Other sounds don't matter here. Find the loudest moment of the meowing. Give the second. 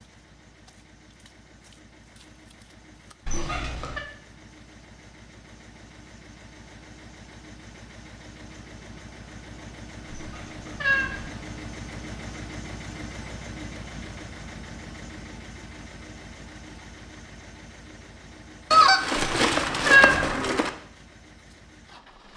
20 s.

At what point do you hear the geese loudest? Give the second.
19 s.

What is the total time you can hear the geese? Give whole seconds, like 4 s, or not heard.
2 s.